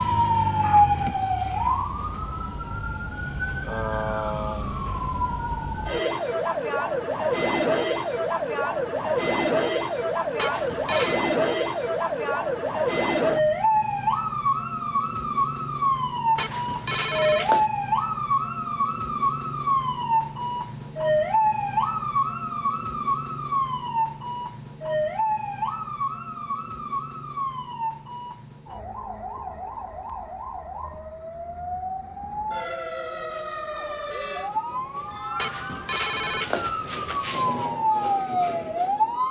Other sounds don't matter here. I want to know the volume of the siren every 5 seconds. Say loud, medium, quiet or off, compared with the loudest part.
loud, loud, loud, loud, loud, medium, medium, loud.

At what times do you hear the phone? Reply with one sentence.
The phone can be heard from 10.3 to 11.2 s, from 16.4 to 17.6 s and from 35.4 to 37.4 s.